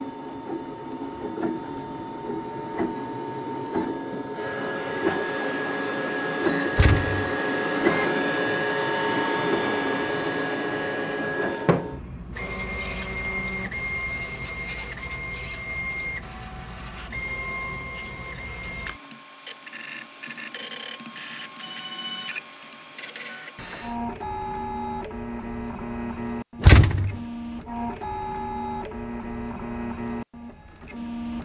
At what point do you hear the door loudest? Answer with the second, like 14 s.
27 s.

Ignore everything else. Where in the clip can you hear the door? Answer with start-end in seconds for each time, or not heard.
6.7-7.3, 26.6-27.2.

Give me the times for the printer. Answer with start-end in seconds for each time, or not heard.
0.0-31.4.